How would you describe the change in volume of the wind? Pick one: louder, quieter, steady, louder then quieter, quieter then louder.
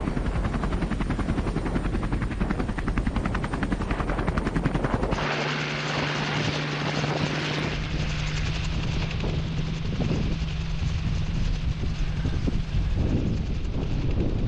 steady.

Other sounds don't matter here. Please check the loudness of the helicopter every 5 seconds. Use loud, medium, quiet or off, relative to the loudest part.
loud, loud, medium.